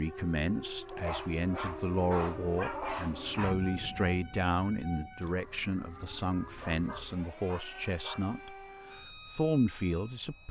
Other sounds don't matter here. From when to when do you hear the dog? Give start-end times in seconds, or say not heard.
0.8-3.5, 6.6-8.2.